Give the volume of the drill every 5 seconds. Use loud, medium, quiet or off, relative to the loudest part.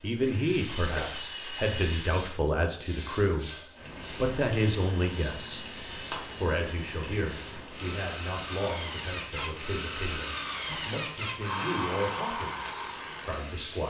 medium, medium, loud.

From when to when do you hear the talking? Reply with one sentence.
You can hear the talking from 0.0 to 3.5 s, from 4.2 to 5.7 s and from 6.3 to 13.8 s.